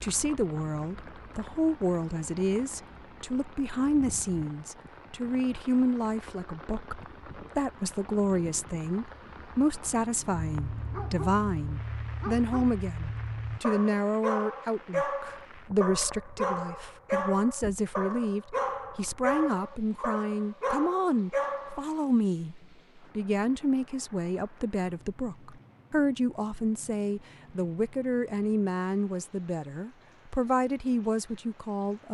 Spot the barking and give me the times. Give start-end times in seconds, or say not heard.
10.6-21.9.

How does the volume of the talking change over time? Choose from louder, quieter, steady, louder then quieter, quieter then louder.
steady.